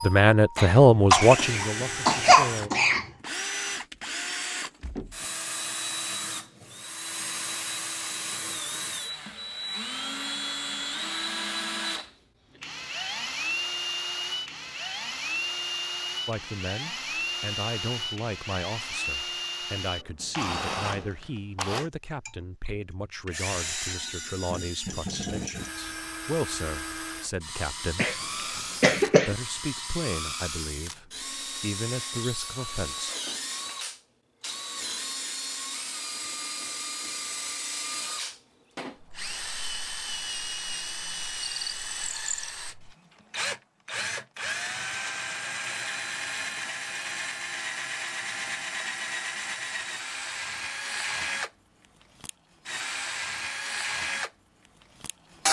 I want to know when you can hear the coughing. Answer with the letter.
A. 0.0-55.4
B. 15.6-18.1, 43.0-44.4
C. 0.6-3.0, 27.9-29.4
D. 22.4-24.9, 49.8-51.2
C.